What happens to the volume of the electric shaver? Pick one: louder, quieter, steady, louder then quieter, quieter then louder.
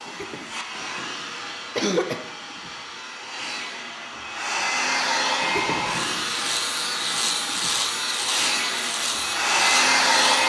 steady.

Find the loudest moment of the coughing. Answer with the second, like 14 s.
2 s.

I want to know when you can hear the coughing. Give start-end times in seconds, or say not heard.
0.1-2.2, 5.4-6.6.